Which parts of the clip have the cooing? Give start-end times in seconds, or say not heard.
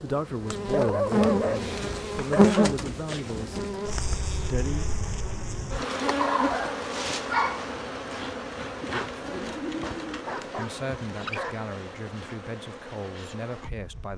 1.1-3.8, 9.1-10.3.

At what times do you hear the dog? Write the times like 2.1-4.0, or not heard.
0.7-2.7, 6.2-7.7, 10.2-11.7.